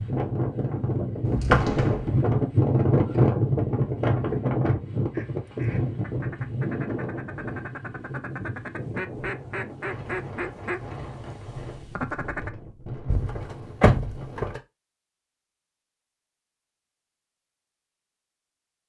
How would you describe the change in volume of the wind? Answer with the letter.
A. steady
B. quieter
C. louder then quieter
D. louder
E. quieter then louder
B.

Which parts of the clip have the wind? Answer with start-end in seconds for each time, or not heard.
0.0-14.4.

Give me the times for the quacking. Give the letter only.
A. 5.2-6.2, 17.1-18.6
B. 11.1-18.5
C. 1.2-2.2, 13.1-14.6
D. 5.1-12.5
D.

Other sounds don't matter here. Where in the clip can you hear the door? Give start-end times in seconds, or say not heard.
1.2-2.2, 13.1-14.6.